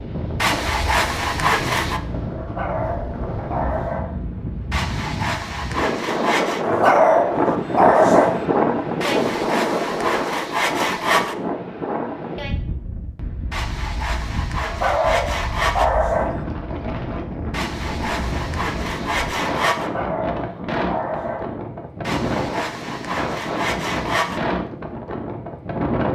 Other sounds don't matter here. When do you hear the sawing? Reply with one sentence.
The sawing can be heard from 0.4 to 2.0 s, from 4.7 to 6.7 s, from 9.0 to 11.3 s, from 13.5 to 15.9 s, from 17.5 to 19.9 s and from 22.1 to 24.4 s.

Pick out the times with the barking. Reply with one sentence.
The barking can be heard from 2.4 to 4.2 s, from 6.6 to 8.4 s, from 14.6 to 16.4 s and from 19.8 to 21.6 s.